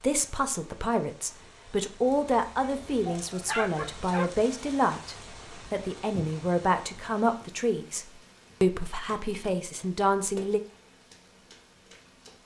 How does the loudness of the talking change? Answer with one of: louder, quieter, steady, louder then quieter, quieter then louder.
steady.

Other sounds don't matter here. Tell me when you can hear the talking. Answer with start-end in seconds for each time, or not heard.
0.0-10.6.